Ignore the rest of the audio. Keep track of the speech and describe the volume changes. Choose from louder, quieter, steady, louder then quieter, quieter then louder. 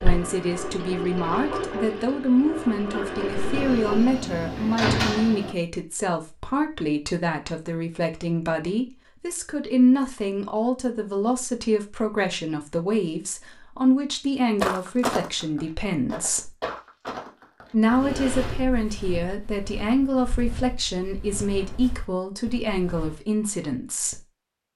steady.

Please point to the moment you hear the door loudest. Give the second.
5 s.